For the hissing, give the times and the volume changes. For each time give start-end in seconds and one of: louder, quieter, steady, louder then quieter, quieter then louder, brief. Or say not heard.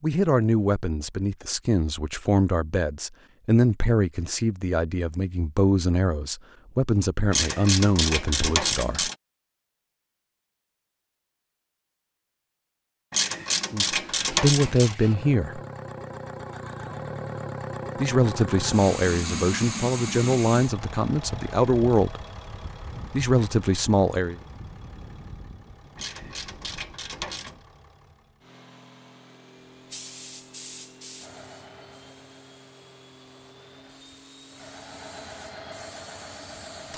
29.9-36.9 quieter then louder.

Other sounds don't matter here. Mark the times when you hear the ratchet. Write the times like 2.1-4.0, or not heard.
7.3-9.2, 13.1-14.9, 25.9-27.6.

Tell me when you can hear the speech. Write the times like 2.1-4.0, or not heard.
0.0-9.1, 13.7-15.6, 17.9-22.2, 23.1-24.4.